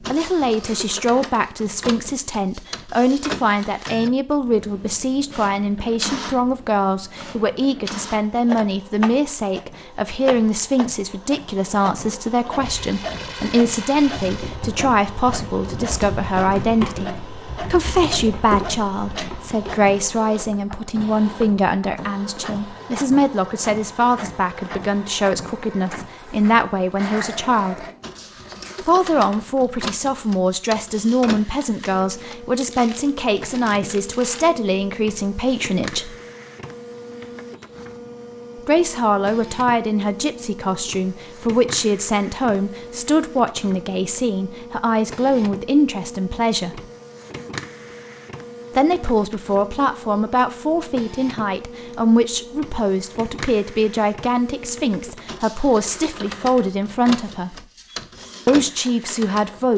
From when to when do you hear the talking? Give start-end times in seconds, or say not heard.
0.0-27.9, 28.8-36.1, 38.6-46.9, 48.8-57.6, 58.5-59.7.